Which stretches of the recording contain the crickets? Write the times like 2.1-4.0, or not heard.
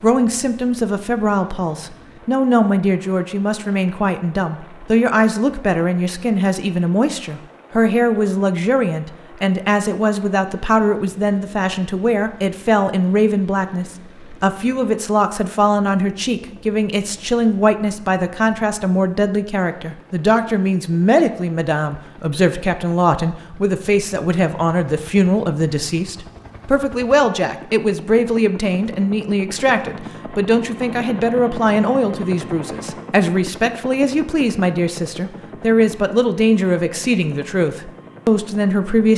not heard.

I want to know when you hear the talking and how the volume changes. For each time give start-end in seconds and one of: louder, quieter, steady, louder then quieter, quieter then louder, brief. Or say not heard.
0.0-39.1 steady.